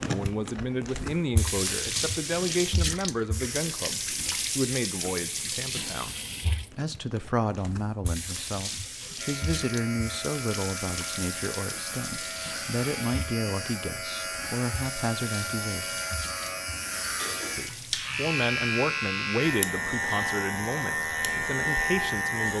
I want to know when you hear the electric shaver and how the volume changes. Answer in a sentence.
The electric shaver can be heard from 9.2 to 22.5 s, getting louder.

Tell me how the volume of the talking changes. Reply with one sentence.
The loudness of the talking stays about the same.